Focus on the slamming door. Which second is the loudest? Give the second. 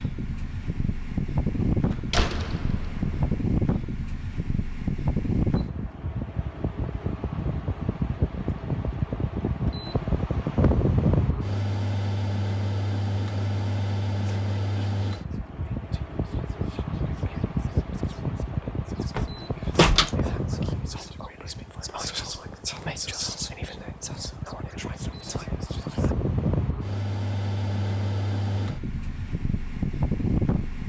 20 s.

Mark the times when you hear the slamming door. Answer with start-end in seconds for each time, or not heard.
1.8-3.4, 19.1-20.1.